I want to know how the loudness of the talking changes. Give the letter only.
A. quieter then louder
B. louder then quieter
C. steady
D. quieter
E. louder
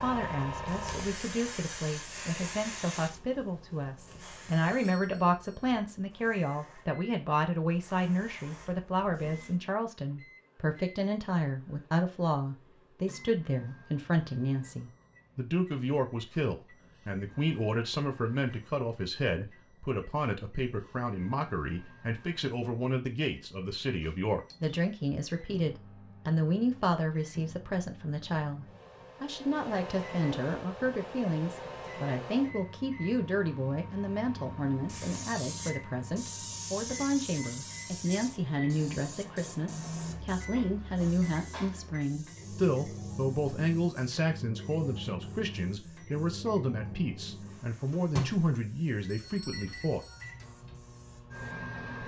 C.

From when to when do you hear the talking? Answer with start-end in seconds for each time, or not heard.
0.0-50.0.